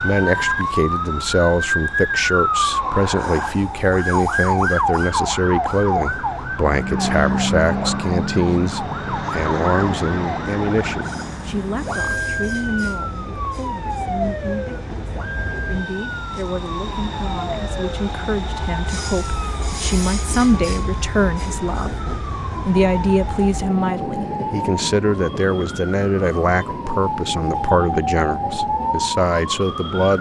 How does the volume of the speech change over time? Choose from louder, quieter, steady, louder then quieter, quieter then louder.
quieter then louder.